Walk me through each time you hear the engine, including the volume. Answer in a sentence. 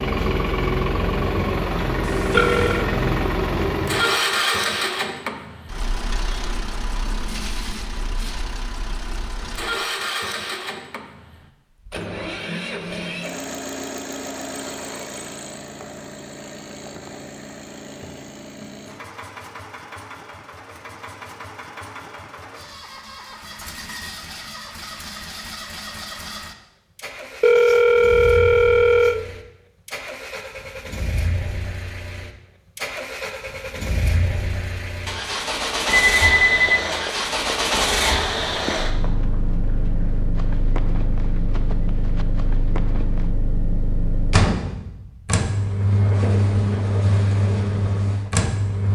You can hear the engine from 0.0 to 48.9 s, getting quieter then louder.